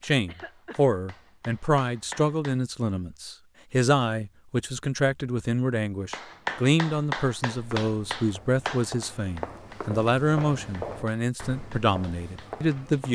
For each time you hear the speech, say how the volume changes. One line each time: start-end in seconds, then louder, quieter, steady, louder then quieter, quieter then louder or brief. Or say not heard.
0.0-13.1 steady.